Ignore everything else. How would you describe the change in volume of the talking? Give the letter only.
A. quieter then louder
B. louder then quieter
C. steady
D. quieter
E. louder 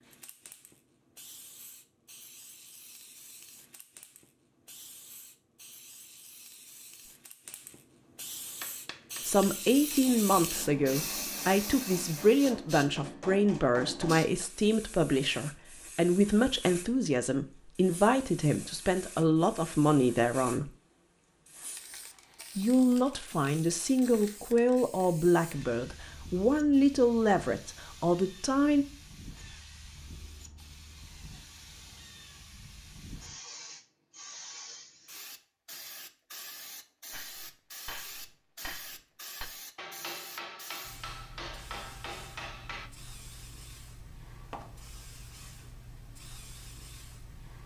C.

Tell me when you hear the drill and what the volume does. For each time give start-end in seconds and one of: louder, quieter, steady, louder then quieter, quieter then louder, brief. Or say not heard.
not heard.